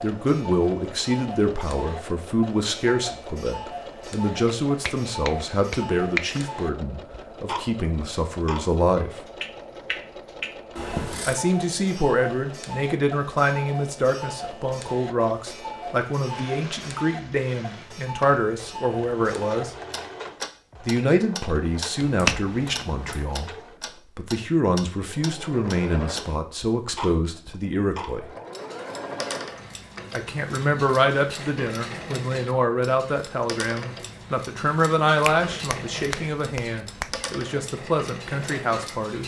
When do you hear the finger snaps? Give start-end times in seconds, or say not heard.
4.5-6.5, 22.1-23.2, 35.2-37.2.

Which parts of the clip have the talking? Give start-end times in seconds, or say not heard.
0.0-9.2, 11.2-19.8, 20.8-23.6, 24.1-28.3, 30.1-39.2.